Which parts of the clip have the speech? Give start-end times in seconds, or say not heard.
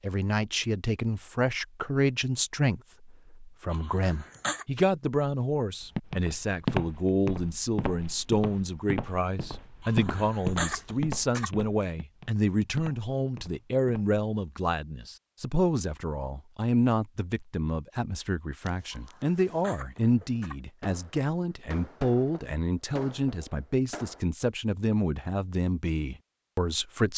0.0-27.1.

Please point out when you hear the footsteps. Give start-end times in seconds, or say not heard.
5.8-14.2.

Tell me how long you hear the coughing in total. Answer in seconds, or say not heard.
4 s.